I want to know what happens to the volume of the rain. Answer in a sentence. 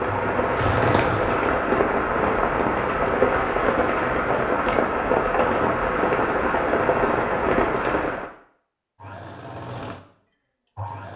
The volume of the rain stays about the same.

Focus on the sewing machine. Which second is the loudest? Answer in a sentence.
The loudest moment of the sewing machine is at 1 second.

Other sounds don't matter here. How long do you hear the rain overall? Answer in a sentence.
The rain can be heard for 8 seconds in total.